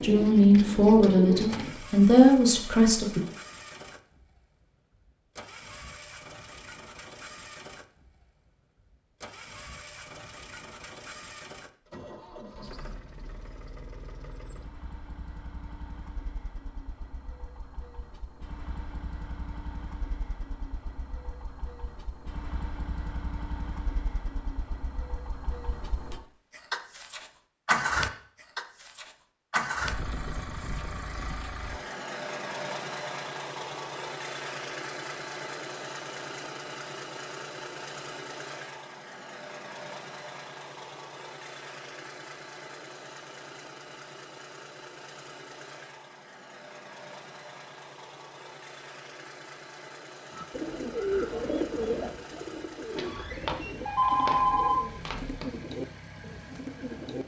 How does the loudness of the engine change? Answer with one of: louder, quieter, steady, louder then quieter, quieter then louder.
louder then quieter.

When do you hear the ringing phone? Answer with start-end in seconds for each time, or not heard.
53.0-55.5.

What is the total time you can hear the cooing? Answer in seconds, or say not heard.
9 s.